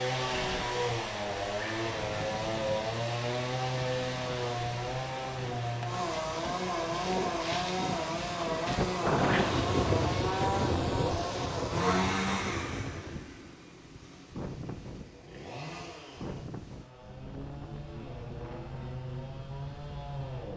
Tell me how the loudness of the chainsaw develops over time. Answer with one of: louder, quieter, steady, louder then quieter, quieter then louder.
quieter.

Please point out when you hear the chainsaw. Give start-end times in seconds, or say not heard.
0.0-20.5.